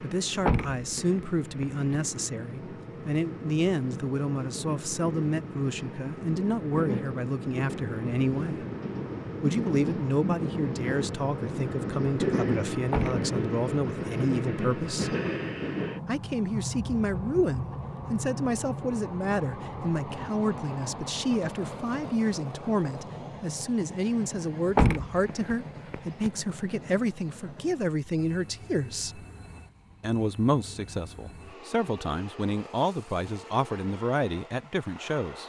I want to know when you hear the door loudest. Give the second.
25 s.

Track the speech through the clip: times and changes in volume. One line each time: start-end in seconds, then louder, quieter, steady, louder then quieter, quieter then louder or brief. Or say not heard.
0.0-8.7 steady
9.4-15.2 steady
16.1-29.2 steady
30.0-35.4 steady.